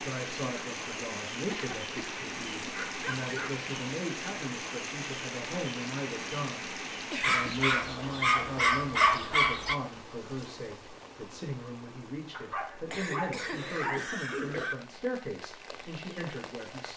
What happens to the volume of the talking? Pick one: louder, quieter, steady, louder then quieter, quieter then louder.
steady.